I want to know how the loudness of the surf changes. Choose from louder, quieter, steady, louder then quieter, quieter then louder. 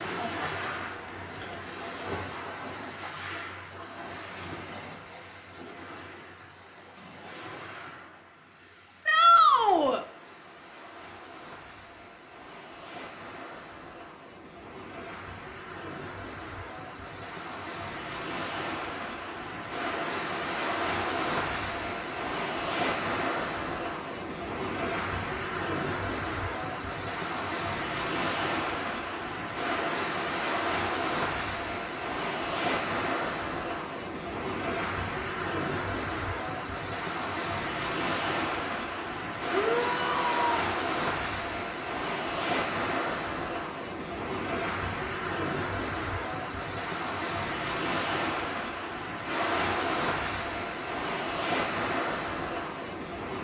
louder.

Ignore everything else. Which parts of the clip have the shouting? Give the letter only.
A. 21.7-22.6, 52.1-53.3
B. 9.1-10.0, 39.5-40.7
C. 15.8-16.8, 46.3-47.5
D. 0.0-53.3
B.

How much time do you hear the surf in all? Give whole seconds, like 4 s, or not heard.
53 s.